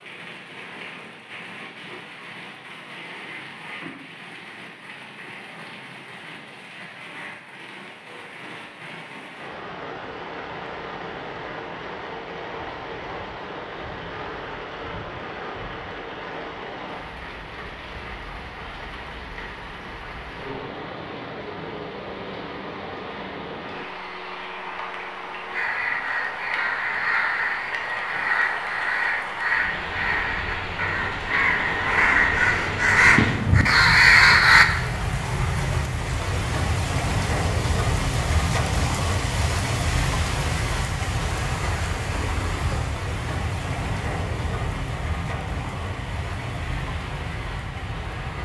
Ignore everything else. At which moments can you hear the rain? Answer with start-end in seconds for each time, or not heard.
0.0-48.3.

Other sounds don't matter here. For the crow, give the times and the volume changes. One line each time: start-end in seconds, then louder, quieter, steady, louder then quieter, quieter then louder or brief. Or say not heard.
25.5-34.6 louder.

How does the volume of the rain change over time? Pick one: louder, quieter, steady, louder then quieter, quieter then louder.
louder.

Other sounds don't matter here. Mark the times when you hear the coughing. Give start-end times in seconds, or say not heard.
not heard.